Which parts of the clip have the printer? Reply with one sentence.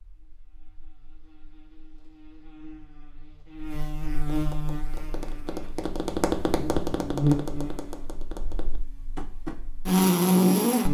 The printer can't be heard in this clip.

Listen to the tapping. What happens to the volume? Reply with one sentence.
The volume of the tapping goes up, then down.